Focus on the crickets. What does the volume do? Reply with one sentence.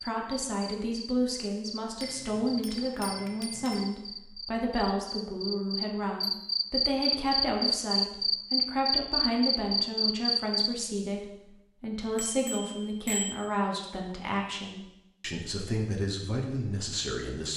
The loudness of the crickets goes up.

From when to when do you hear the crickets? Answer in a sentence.
The crickets can be heard from 0.0 to 10.8 s.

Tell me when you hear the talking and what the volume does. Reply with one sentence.
You can hear the talking from 0.0 to 17.5 s, at a steady volume.